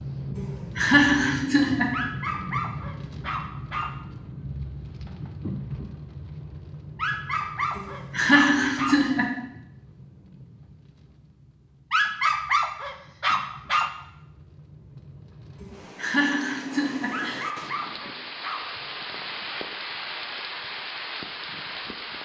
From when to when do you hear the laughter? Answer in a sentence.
You can hear the laughter from 0.3 to 1.9 s, from 7.8 to 9.3 s and from 15.6 to 17.4 s.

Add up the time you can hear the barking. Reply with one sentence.
You can hear the barking for 8 seconds altogether.